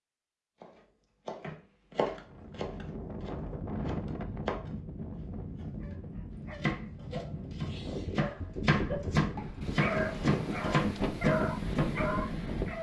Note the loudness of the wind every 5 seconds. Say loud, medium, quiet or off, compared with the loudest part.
medium, medium, loud.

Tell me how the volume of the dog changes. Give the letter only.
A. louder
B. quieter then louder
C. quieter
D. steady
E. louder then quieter
A.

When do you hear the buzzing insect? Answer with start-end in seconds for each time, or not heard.
not heard.